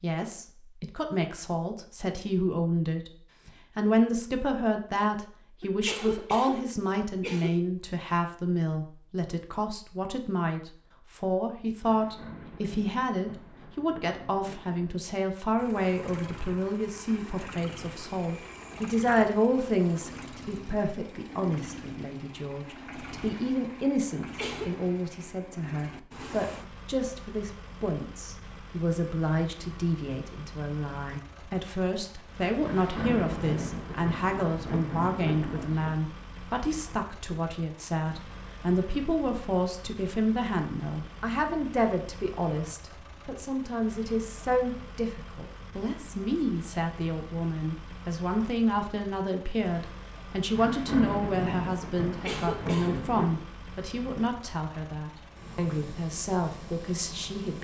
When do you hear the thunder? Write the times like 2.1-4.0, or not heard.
11.8-15.2, 32.6-35.9, 50.5-53.5.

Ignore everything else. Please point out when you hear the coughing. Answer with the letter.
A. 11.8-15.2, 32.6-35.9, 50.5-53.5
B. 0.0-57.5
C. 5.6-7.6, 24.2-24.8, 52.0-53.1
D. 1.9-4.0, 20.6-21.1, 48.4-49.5
C.